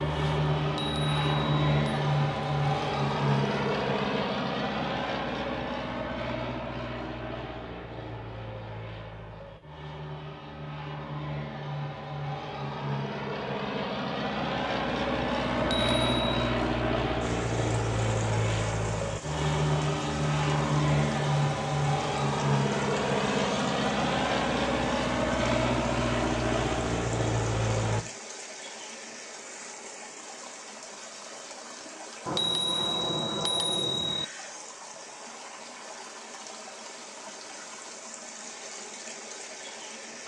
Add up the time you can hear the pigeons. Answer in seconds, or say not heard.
not heard.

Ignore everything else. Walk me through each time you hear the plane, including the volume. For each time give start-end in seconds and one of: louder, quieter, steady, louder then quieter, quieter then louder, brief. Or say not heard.
0.0-28.1 quieter then louder.